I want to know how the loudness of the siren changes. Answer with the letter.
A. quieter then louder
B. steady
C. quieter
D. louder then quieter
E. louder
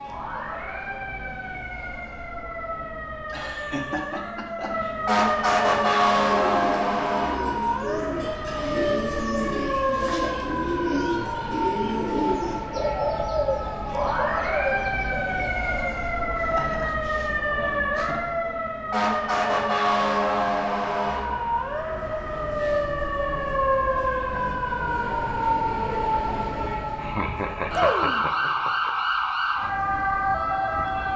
B.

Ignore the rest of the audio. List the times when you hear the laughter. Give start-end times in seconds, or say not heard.
3.2-5.0, 16.4-18.2, 26.9-28.9.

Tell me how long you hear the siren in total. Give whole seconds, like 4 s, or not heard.
31 s.